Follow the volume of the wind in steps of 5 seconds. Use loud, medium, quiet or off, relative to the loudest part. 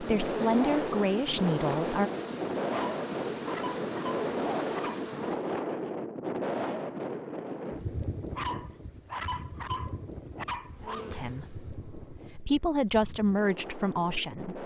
loud, loud, quiet.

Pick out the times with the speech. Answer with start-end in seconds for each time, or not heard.
0.0-2.1, 11.1-14.6.